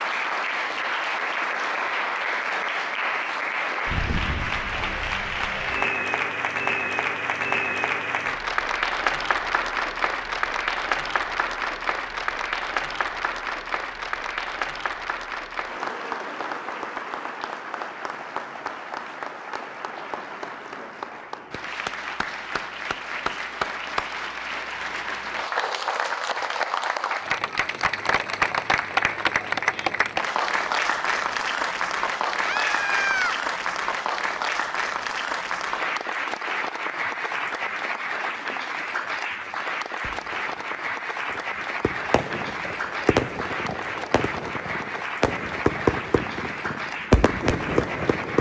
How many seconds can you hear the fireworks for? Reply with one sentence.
The fireworks can be heard for 8 seconds in total.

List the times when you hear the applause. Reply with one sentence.
You can hear the applause from 0.0 to 48.3 s.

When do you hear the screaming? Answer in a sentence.
You can hear the screaming from 32.4 to 33.4 s.